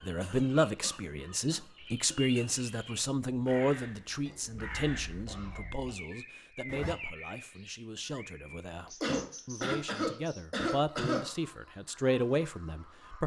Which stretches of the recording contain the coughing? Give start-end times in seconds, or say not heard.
0.2-2.5, 4.5-5.9, 9.0-11.2.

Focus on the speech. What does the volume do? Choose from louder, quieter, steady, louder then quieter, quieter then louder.
quieter then louder.